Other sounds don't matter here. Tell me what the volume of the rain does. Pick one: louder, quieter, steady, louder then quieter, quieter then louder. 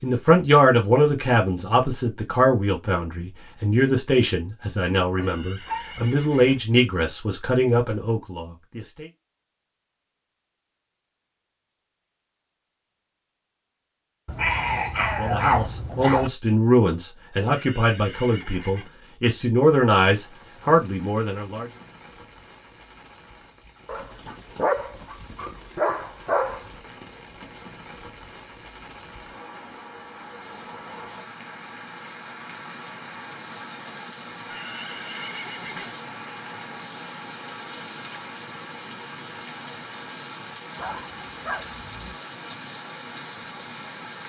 louder.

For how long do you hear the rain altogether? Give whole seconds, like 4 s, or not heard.
24 s.